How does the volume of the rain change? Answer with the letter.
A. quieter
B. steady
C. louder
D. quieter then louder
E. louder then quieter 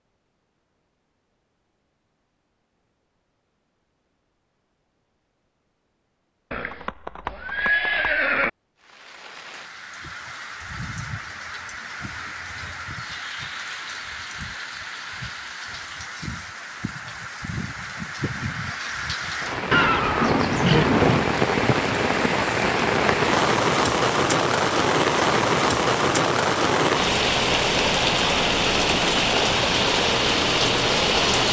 C.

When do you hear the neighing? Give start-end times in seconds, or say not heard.
6.5-8.5, 19.7-21.3.